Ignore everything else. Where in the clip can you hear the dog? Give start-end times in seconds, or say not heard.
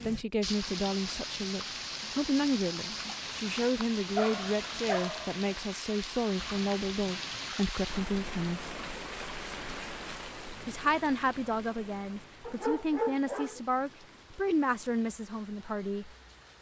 4.2-5.7, 12.4-13.6.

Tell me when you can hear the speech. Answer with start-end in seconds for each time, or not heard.
0.1-8.6, 10.7-16.1.